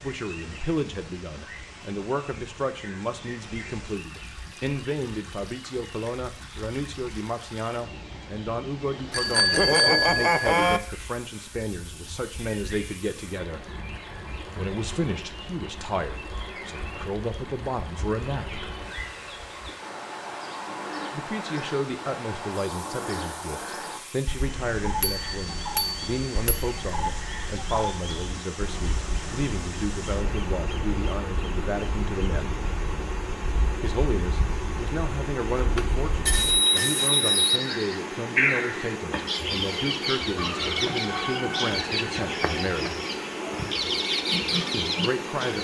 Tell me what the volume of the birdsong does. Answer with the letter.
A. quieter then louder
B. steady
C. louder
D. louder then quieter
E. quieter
C.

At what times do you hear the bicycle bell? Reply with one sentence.
You can hear the bicycle bell from 9.1 to 10.8 s, from 25.0 to 26.6 s and from 35.5 to 37.5 s.